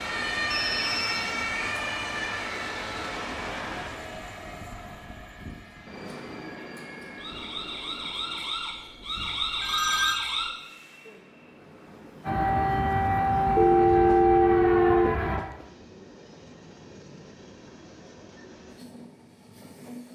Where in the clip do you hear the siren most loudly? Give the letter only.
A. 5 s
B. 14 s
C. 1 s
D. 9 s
B.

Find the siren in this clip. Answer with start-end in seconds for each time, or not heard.
0.0-10.5, 12.2-15.4.